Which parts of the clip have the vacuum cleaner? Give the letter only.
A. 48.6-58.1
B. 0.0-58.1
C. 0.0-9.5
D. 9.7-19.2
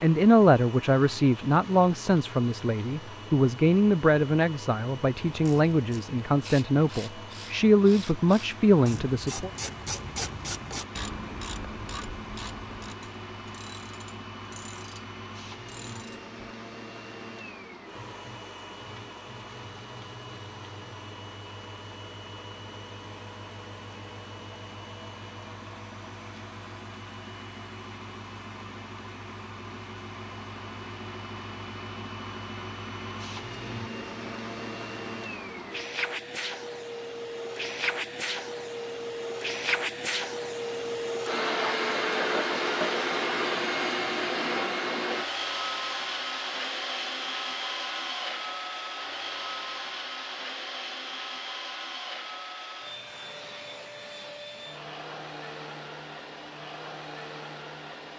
B.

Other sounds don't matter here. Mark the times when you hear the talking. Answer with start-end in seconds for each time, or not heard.
0.0-9.5.